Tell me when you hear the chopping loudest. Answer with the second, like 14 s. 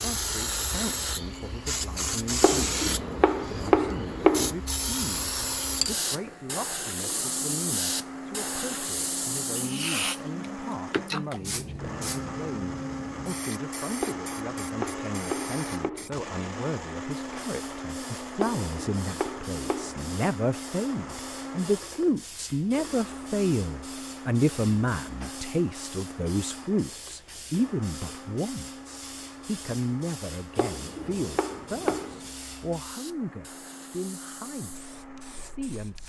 4 s.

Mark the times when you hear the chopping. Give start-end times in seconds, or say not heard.
2.4-4.5, 14.0-16.1, 18.4-20.1, 30.6-32.3.